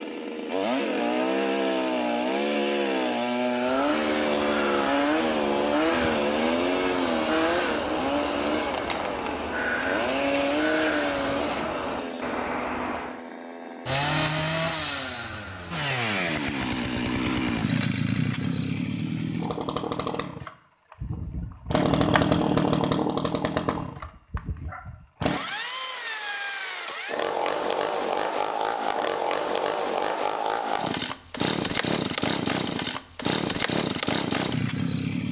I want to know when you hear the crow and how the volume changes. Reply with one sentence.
The crow can be heard from 3.5 to 13.2 s, at a steady volume.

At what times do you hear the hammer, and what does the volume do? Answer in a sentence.
The hammer can't be heard in this clip.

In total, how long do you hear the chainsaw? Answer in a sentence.
You can hear the chainsaw for 35 seconds altogether.